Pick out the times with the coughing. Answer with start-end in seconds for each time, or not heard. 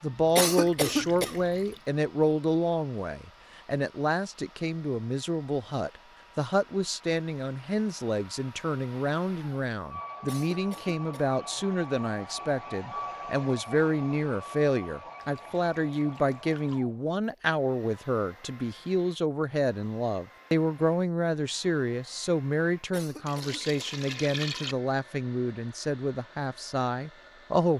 0.3-1.4, 10.2-11.3, 22.9-23.9.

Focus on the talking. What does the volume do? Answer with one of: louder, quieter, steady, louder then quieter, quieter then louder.
steady.